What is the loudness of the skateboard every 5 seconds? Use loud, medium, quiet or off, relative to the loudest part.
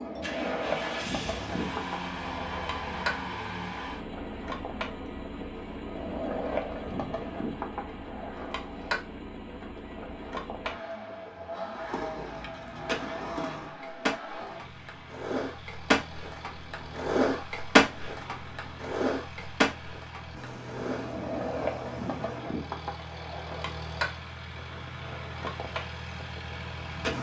medium, medium, medium, loud, medium, medium.